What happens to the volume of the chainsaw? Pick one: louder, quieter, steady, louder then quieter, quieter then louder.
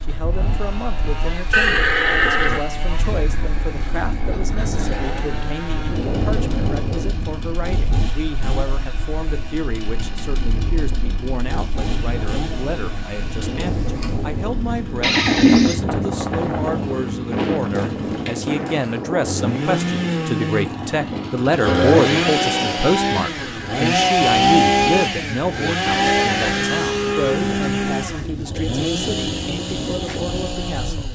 louder.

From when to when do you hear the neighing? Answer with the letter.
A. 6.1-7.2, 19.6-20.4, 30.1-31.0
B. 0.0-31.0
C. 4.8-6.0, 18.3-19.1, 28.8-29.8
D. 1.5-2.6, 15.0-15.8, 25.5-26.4
D.